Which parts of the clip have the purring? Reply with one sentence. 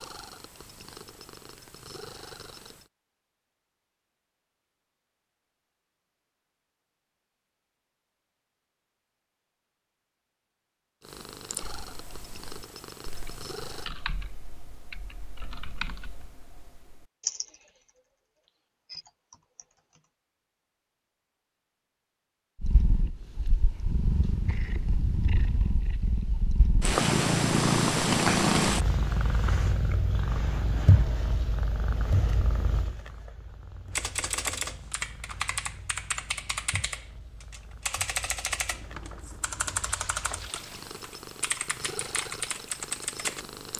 You can hear the purring from 0.0 to 2.9 s, from 11.0 to 13.9 s and from 22.6 to 43.7 s.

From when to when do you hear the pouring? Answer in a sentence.
You can hear the pouring from 38.7 to 41.0 s.